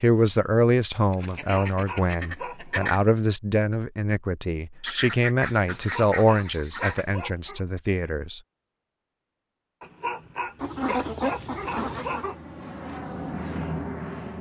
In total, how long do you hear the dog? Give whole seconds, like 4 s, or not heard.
6 s.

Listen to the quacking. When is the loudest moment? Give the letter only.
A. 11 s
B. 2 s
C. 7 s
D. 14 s
A.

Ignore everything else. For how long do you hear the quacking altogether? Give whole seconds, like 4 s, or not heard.
6 s.